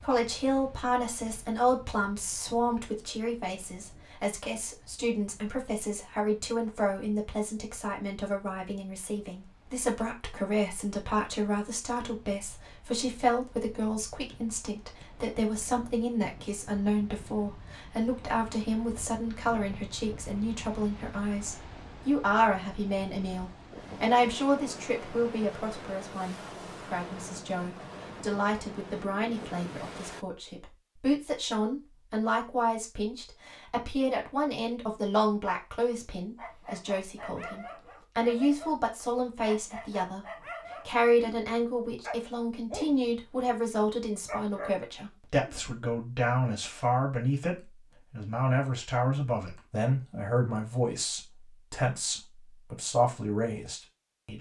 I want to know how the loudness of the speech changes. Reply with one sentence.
The volume of the speech stays about the same.